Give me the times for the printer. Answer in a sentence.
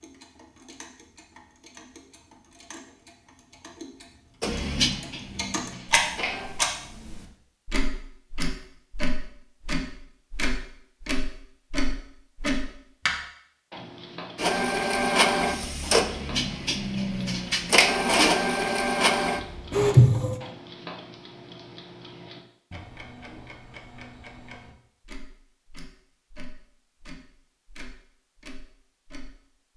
The printer can be heard from 4.4 to 6.5 s and from 14.3 to 20.4 s.